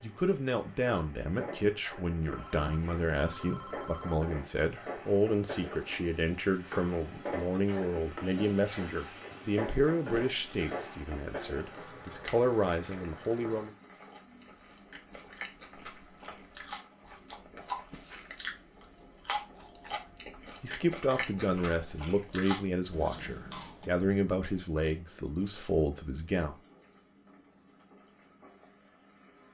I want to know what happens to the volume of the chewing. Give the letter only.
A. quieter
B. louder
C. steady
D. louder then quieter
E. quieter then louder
B.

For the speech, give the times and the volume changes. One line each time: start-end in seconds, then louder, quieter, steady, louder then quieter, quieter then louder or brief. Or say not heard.
0.0-13.7 steady
20.6-26.6 steady.